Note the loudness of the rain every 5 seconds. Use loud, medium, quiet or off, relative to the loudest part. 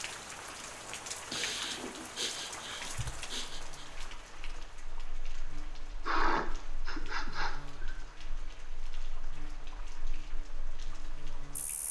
loud, medium, medium.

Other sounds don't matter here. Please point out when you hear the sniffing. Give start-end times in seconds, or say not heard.
1.3-3.9, 6.0-8.0.